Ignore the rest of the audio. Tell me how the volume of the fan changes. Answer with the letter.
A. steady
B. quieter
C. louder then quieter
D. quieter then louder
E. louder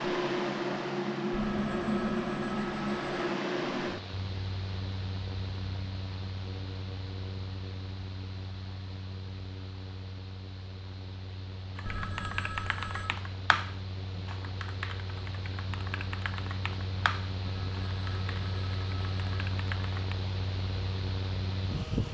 D.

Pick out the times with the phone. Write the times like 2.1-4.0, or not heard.
1.3-3.4, 11.8-13.2, 17.4-19.3.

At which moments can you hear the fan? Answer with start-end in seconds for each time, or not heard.
0.0-22.0.